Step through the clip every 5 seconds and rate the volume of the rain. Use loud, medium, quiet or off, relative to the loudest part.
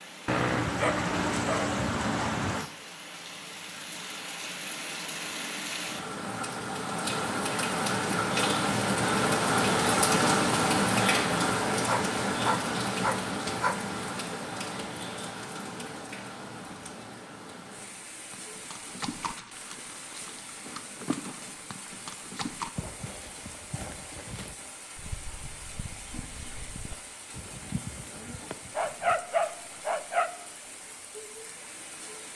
quiet, loud, loud, quiet, quiet, quiet, quiet.